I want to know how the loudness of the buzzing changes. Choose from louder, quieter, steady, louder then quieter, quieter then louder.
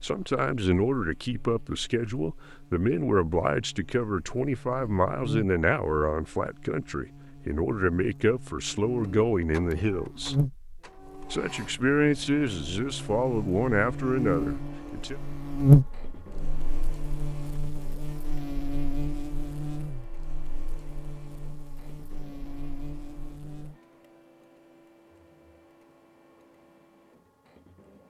louder then quieter.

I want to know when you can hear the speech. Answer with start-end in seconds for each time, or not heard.
0.0-10.3, 11.3-15.2.